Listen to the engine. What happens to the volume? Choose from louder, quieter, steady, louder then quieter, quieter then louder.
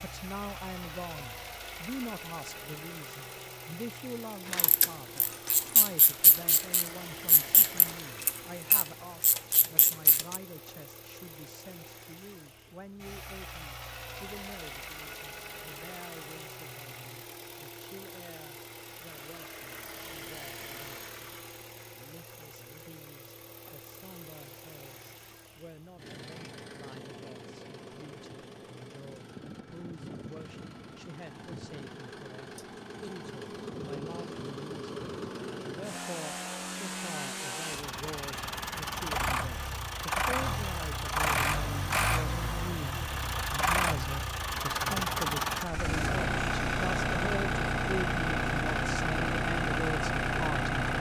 louder.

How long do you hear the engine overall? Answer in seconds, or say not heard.
51 s.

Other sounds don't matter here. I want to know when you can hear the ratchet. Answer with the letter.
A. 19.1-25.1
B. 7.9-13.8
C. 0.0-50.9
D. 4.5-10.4
D.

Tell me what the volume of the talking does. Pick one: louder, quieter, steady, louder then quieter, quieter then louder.
quieter then louder.